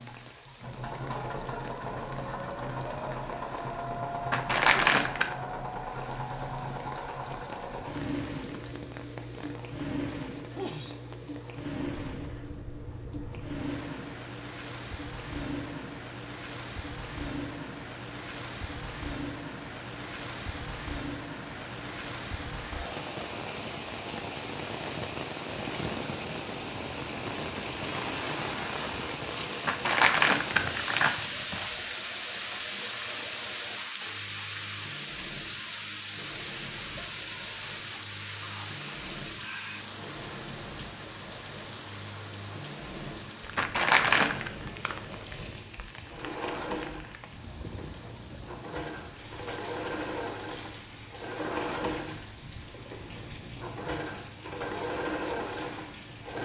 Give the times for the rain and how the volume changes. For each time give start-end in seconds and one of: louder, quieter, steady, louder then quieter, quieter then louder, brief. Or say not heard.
0.0-56.4 louder then quieter.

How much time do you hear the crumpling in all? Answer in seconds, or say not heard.
4 s.